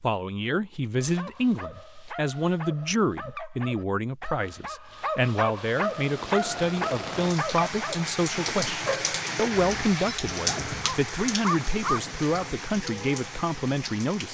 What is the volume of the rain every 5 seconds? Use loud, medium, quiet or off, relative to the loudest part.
off, loud, loud.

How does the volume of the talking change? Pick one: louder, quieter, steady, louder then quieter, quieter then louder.
steady.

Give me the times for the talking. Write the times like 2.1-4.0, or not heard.
0.0-14.2.